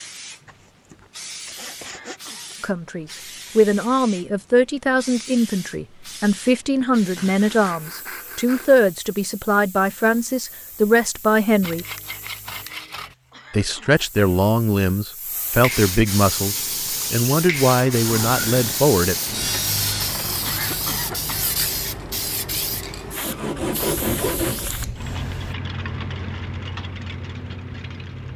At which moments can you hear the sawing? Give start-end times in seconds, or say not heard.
0.5-2.2, 7.2-8.8, 11.6-13.2, 18.1-20.2, 23.2-24.7.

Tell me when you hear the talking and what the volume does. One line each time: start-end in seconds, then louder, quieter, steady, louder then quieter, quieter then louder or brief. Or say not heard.
2.6-11.8 steady
13.5-19.1 steady.